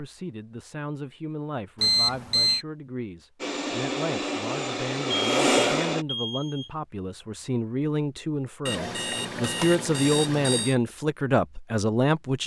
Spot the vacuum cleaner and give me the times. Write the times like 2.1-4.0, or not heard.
3.4-6.0.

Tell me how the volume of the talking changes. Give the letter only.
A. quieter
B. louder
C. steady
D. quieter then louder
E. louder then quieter
B.